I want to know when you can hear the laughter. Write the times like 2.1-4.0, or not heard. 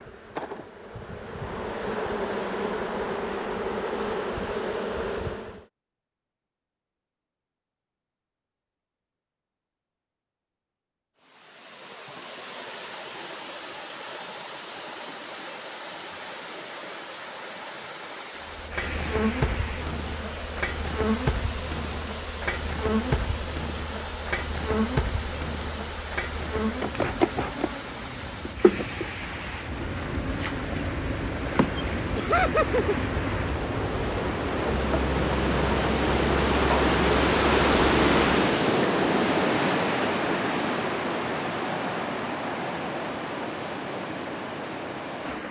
32.1-33.0.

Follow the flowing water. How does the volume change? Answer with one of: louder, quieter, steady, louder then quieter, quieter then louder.
louder.